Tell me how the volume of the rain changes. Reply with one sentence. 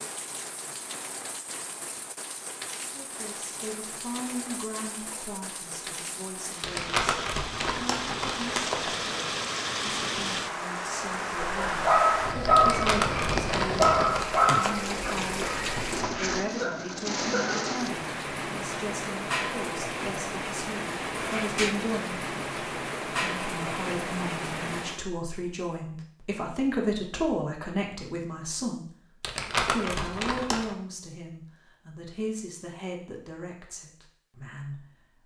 The loudness of the rain goes up.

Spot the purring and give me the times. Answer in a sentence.
You can't hear the purring here.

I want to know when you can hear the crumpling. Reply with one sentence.
You can hear the crumpling from 6.6 to 9.0 s, from 12.6 to 14.8 s and from 29.2 to 30.8 s.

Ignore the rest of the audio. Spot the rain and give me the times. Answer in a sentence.
You can hear the rain from 0.0 to 25.1 s.